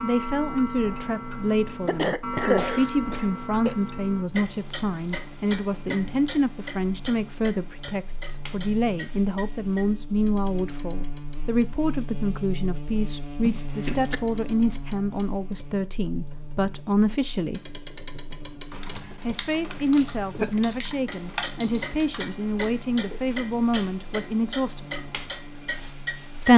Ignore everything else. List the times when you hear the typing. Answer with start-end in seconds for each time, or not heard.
18.7-23.9.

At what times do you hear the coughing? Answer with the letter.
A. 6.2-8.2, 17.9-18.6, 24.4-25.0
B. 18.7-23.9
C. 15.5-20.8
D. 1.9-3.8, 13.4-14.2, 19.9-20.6
D.